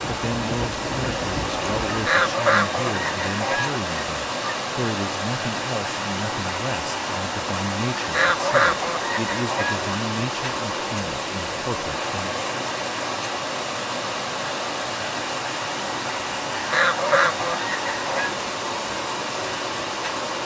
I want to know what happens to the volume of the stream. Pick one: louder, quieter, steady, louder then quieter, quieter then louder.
steady.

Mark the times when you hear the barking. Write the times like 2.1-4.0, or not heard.
not heard.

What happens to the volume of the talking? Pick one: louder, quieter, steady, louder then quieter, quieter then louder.
steady.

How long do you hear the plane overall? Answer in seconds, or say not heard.
2 s.